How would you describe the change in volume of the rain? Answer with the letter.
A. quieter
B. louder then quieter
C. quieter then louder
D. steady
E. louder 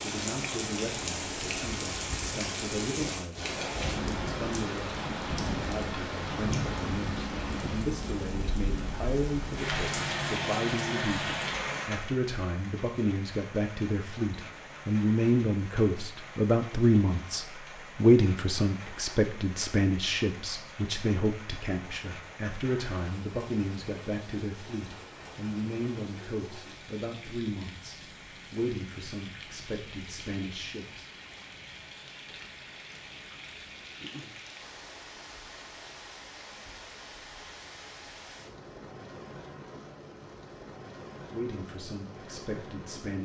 A.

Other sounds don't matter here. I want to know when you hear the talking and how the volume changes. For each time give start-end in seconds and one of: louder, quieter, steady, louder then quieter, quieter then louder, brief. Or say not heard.
0.0-31.1 louder then quieter
41.3-43.2 brief.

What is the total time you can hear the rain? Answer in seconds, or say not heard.
43 s.